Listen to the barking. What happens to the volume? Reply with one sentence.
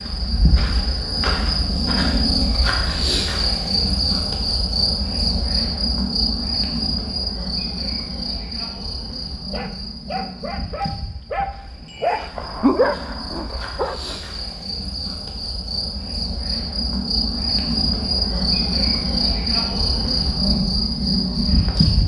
The volume of the barking goes up, then down.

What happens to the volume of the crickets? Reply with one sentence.
The loudness of the crickets goes down, then up.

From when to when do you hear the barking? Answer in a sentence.
You can hear the barking from 9.4 to 14.6 s.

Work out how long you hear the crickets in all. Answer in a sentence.
You can hear the crickets for 22 seconds altogether.